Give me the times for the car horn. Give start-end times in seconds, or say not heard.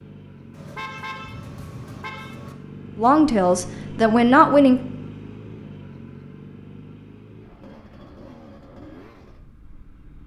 0.5-2.5.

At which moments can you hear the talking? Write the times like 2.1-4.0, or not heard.
3.0-4.8.